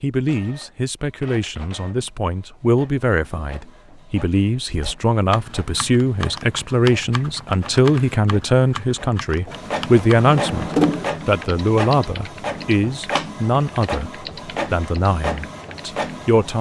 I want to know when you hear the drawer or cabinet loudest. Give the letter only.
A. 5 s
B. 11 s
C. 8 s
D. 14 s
B.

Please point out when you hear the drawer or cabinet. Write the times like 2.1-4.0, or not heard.
9.4-11.1.